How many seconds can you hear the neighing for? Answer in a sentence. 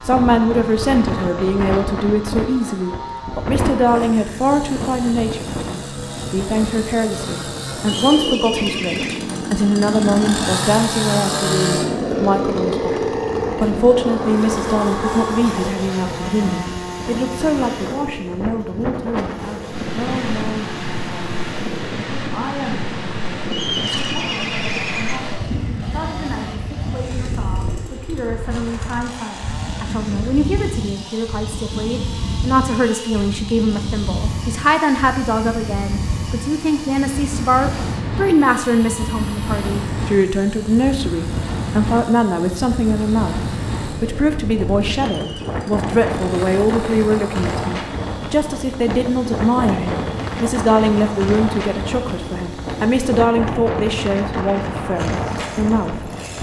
The neighing can be heard for 4 seconds in total.